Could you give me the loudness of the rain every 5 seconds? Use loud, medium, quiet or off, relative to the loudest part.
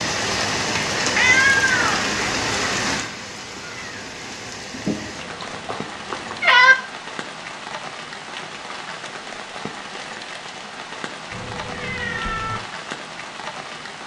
loud, medium, medium.